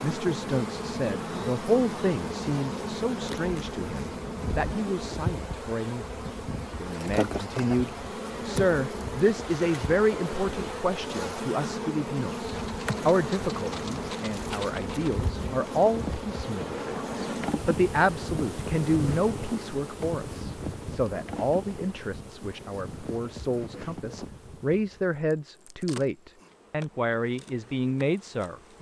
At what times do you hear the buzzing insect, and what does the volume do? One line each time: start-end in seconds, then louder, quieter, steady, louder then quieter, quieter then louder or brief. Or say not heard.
0.0-28.7 quieter.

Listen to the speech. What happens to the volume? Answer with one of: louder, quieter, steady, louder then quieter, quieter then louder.
steady.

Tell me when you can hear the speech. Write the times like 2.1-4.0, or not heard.
0.0-6.1, 6.8-28.7.